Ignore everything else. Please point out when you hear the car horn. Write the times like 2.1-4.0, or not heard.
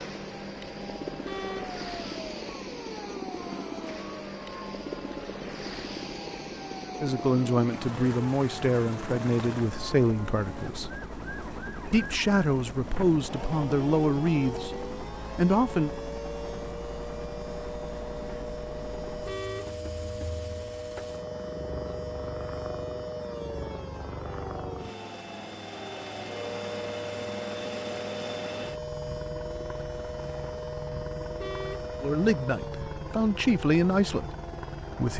1.2-1.8, 19.2-19.8, 31.4-31.9.